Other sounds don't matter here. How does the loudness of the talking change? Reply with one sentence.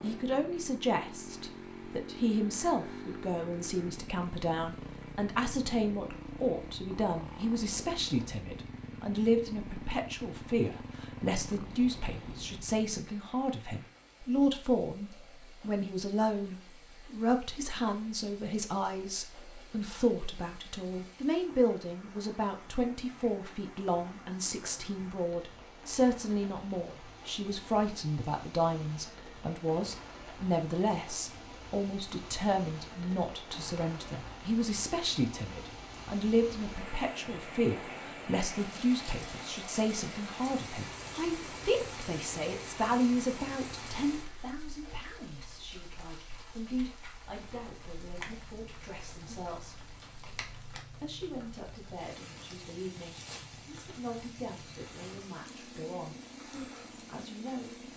The loudness of the talking goes down.